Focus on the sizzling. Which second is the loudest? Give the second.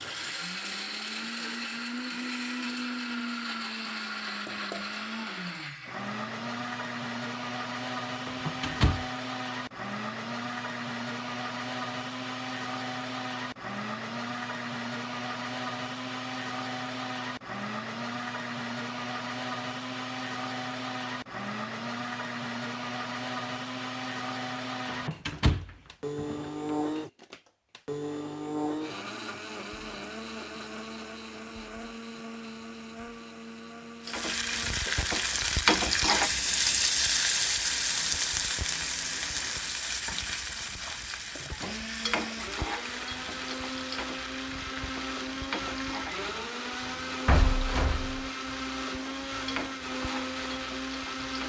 36 s.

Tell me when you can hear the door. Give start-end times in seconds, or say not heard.
8.2-9.1, 24.9-26.4, 47.2-48.3.